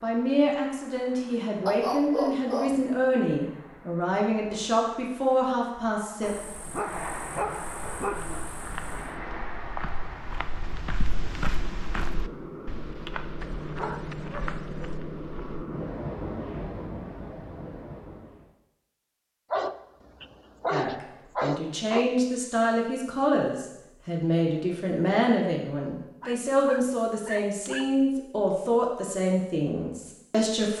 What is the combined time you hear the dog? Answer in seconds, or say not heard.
10 s.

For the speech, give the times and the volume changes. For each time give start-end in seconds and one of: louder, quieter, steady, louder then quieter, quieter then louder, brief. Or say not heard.
0.0-6.3 steady
20.7-30.7 steady.